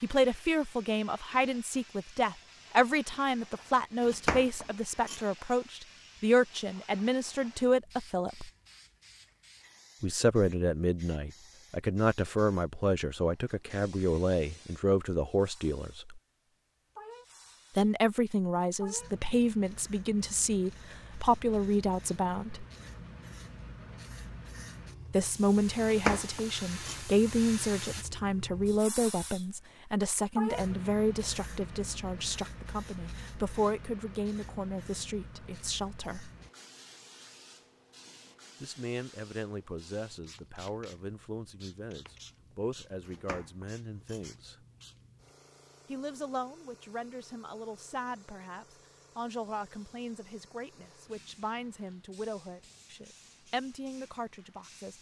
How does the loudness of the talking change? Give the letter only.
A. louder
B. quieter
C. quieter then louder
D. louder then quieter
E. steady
B.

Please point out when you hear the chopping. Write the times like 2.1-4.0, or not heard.
4.0-5.2, 25.8-26.9, 43.0-44.2.